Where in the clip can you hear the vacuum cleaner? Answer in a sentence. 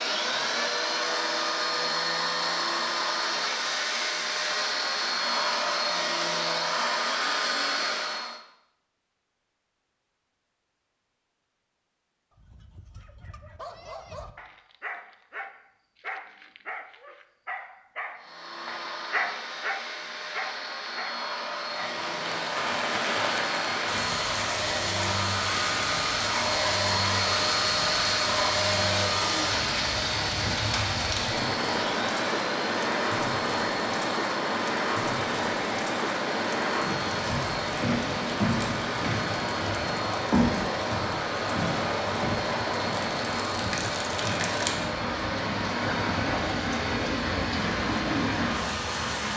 The vacuum cleaner can be heard from 0.0 to 8.4 s and from 18.1 to 49.3 s.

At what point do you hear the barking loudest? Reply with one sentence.
The loudest moment of the barking is at 19 seconds.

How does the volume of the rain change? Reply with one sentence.
The loudness of the rain stays about the same.